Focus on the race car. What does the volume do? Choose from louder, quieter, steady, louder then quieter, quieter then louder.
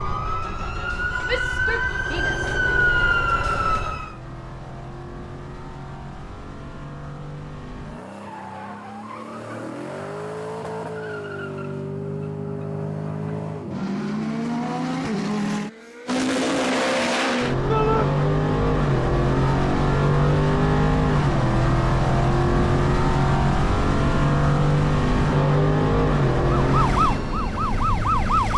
louder.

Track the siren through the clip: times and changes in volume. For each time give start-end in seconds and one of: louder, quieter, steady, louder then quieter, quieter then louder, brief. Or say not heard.
0.0-4.2 louder
26.6-28.5 brief.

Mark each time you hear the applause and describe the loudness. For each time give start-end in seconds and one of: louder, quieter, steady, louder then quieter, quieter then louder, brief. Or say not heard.
not heard.